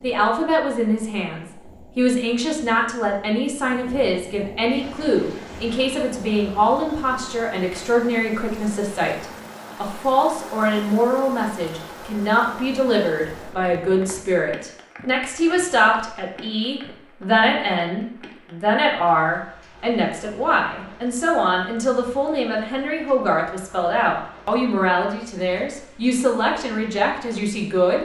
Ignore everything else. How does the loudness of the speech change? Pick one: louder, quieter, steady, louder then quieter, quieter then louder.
steady.